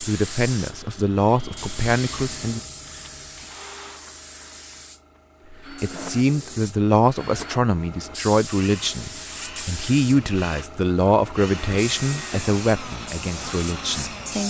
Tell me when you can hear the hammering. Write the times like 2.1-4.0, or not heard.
not heard.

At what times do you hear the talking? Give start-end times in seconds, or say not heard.
0.0-2.6, 5.5-14.4.